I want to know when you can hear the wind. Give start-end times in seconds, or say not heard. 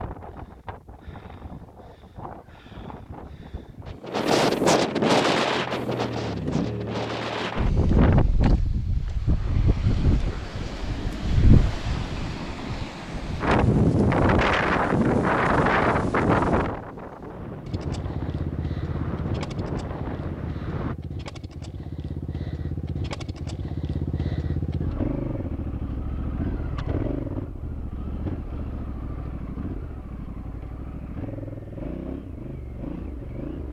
0.0-20.9.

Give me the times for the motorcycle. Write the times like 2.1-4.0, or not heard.
5.3-7.5, 17.6-33.6.